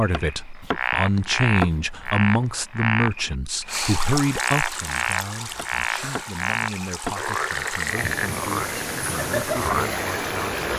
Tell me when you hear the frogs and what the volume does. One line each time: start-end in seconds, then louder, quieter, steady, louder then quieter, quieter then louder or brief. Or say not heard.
0.0-10.7 steady.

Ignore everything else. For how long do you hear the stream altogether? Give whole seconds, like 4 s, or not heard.
7 s.